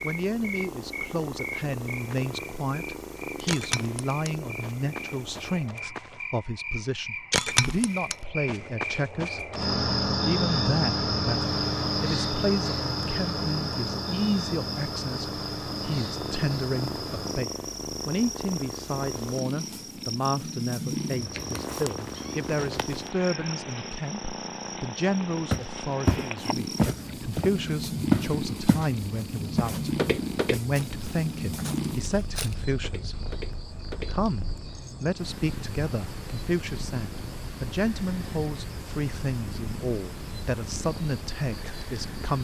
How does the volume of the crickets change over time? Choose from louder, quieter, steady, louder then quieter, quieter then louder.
quieter.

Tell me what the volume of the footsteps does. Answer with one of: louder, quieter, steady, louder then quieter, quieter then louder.
quieter.